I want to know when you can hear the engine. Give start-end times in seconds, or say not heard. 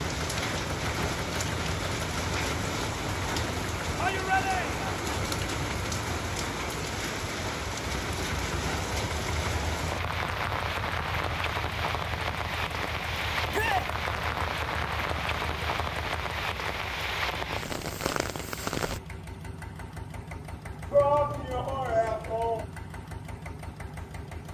0.0-24.4.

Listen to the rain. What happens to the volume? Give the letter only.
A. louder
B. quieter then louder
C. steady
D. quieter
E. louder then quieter
C.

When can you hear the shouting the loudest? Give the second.
21 s.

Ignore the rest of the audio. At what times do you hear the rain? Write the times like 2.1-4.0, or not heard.
0.0-19.0.